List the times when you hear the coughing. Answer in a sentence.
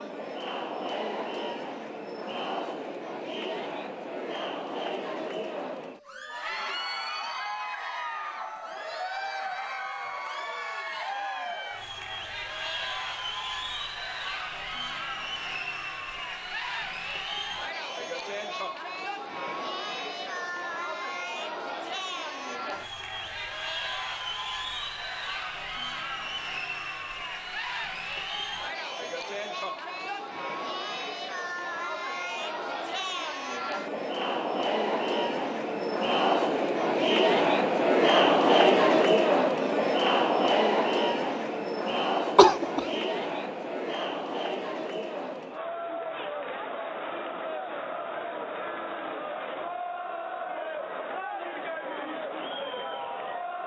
You can hear the coughing from 42.4 to 43.0 s.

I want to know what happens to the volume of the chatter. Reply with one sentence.
The volume of the chatter goes up, then down.